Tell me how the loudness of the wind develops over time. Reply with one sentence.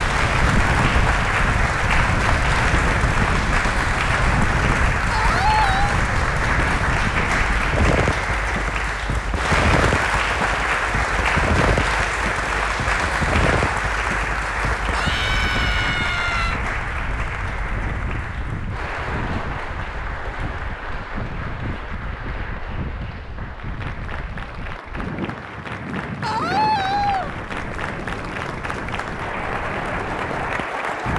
The volume of the wind goes down.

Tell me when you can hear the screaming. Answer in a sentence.
The screaming can be heard from 5.1 to 6.0 s, from 14.9 to 16.6 s and from 26.2 to 27.3 s.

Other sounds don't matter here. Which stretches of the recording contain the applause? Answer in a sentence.
You can hear the applause from 0.0 to 31.1 s.